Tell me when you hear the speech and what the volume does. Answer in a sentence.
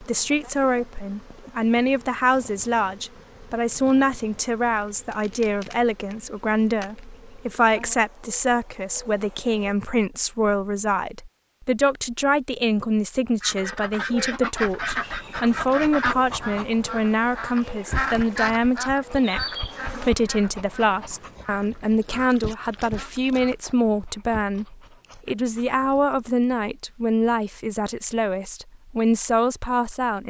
The speech can be heard from 0.0 to 30.2 s, at a steady volume.